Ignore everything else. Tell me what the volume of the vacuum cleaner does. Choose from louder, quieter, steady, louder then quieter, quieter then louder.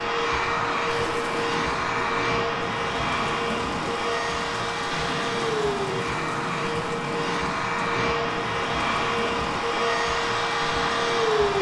steady.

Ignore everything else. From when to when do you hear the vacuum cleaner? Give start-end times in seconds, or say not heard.
0.0-11.5.